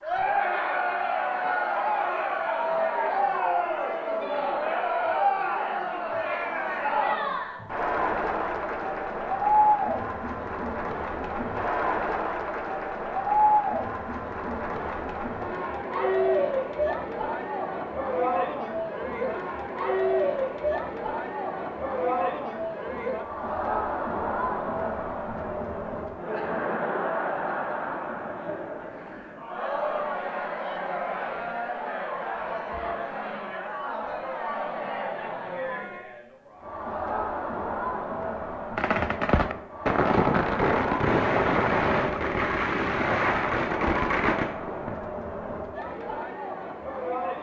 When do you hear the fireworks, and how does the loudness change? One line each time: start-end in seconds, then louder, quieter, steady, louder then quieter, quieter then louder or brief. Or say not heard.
38.8-45.0 steady.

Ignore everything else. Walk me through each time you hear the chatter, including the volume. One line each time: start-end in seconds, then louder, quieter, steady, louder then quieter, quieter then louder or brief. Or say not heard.
0.0-47.3 quieter.